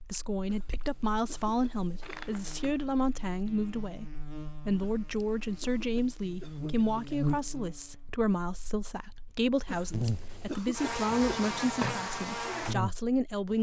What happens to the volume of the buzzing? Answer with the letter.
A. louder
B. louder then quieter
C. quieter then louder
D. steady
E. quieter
A.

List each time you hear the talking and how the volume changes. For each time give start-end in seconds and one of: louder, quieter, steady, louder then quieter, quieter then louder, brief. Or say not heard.
0.1-13.5 steady.